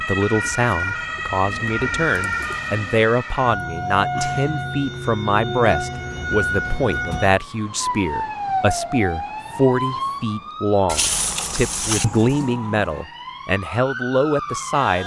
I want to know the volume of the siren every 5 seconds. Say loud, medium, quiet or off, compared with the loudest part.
loud, loud, medium.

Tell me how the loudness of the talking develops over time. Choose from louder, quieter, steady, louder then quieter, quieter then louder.
steady.